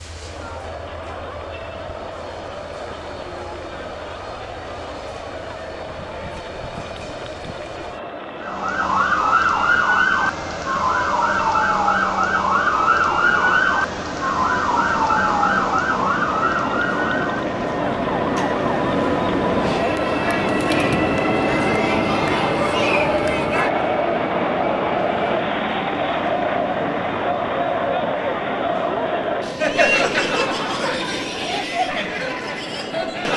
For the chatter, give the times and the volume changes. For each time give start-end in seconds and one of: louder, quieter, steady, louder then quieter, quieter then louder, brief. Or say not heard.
0.0-33.3 louder.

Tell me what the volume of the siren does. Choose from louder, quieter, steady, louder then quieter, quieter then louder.
quieter.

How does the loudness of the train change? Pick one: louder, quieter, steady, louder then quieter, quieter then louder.
louder then quieter.